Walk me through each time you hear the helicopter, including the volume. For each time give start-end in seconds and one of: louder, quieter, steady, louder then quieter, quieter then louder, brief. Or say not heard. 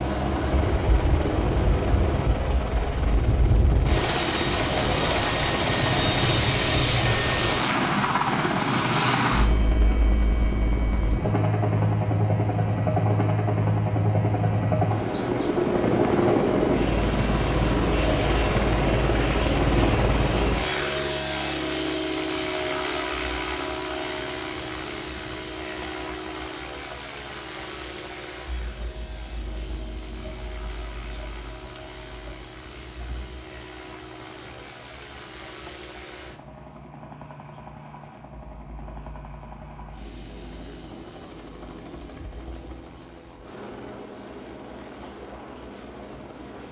0.0-46.6 quieter.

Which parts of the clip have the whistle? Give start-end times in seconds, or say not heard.
not heard.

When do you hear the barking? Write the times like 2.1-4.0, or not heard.
not heard.